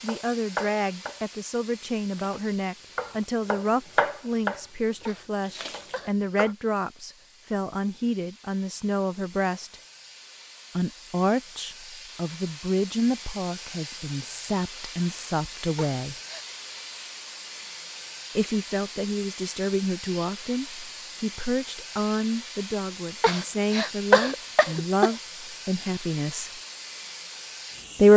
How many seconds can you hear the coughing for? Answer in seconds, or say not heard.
4 s.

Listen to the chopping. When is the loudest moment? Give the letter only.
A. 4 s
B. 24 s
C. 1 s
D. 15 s
A.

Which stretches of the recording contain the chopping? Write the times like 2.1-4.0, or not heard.
0.0-6.5.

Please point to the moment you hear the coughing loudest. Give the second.
24 s.